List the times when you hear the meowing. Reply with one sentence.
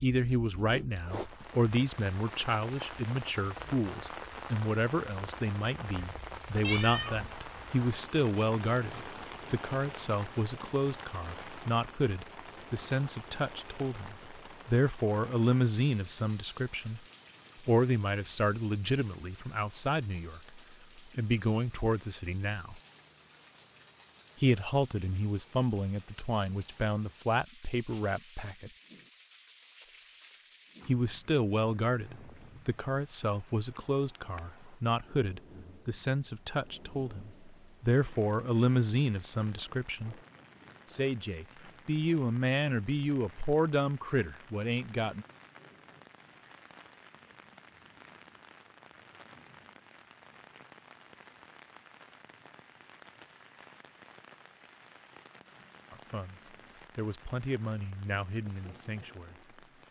The meowing can be heard from 6.6 to 7.3 s.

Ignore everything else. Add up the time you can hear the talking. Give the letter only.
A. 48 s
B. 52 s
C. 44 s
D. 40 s
C.